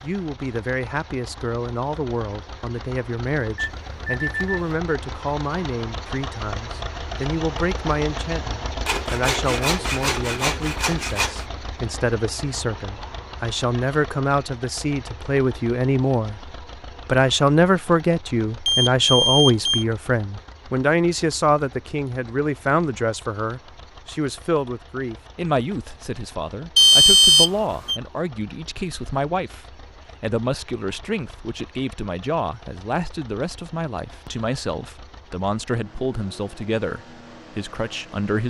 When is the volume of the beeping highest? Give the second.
27 s.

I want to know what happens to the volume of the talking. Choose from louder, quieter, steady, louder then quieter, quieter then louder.
louder then quieter.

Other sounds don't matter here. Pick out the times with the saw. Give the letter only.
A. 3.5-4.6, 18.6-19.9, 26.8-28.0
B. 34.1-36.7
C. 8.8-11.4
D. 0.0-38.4
C.